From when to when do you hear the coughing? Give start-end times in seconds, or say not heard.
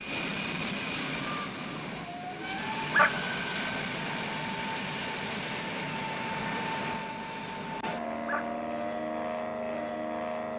not heard.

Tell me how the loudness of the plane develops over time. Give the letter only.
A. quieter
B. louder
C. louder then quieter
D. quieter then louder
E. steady
E.